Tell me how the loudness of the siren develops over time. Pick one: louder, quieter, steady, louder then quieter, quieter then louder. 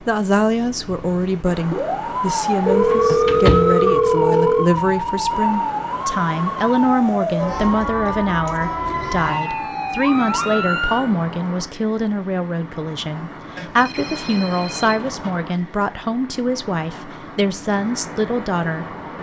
steady.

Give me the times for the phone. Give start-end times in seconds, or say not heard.
2.6-4.7, 8.8-9.7, 13.6-15.4.